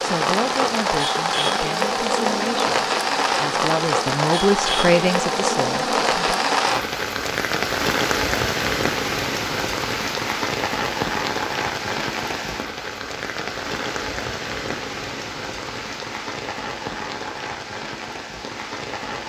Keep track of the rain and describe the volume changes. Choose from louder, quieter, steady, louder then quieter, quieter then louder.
quieter.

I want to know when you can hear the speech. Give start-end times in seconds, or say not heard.
0.0-6.4.